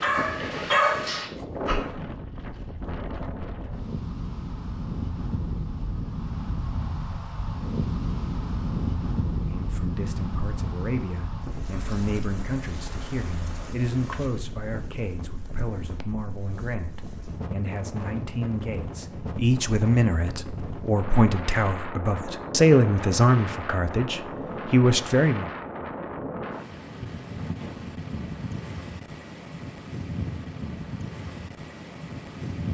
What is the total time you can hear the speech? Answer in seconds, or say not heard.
16 s.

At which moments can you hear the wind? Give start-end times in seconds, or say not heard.
0.0-32.6.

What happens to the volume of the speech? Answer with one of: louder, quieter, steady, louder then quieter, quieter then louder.
louder.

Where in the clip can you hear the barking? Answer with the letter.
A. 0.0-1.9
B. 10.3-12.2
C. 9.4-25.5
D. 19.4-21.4
A.